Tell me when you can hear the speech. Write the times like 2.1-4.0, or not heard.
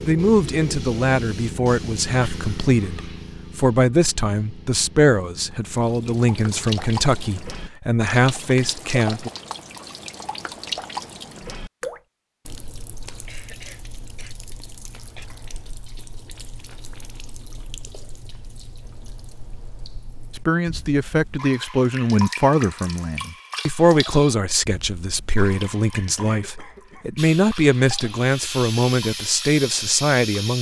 0.0-9.3, 20.4-30.5.